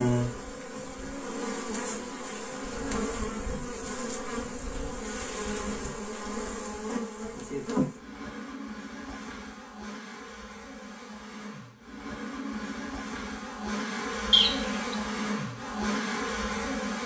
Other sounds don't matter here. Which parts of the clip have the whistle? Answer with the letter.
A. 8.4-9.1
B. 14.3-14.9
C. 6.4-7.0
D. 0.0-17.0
B.